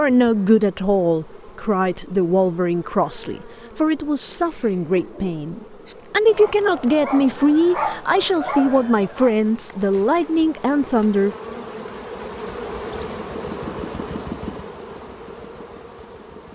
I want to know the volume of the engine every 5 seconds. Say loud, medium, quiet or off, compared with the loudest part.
off, off, loud, quiet.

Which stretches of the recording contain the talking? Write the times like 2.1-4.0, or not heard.
0.0-11.3.